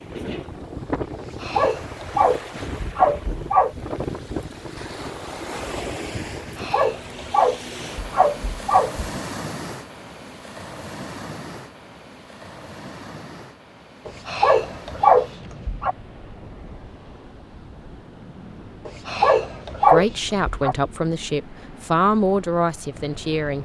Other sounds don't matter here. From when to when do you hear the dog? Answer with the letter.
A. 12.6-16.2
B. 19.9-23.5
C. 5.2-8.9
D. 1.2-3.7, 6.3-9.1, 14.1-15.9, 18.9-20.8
D.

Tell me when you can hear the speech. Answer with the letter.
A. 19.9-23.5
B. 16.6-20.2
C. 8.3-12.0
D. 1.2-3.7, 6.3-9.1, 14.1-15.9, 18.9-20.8
A.